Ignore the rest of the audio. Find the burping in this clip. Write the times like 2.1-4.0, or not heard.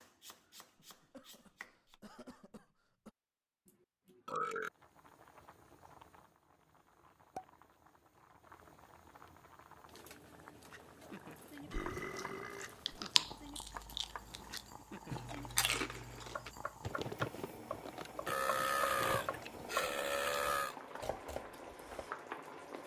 4.2-4.7, 11.6-12.8, 18.2-20.8.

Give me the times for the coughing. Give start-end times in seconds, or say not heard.
0.8-3.1.